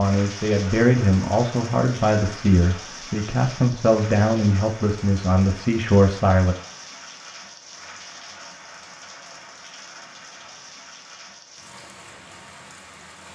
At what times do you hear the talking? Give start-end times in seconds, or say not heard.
0.0-6.5.